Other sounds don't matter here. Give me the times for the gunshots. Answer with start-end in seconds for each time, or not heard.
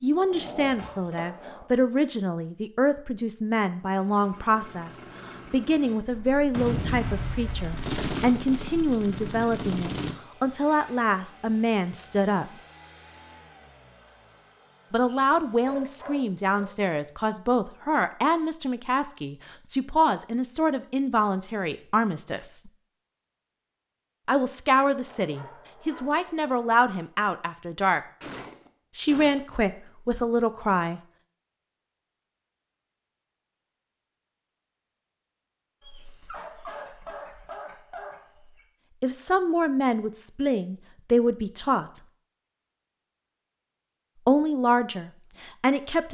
6.1-10.2, 28.2-29.6.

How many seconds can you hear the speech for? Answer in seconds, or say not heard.
31 s.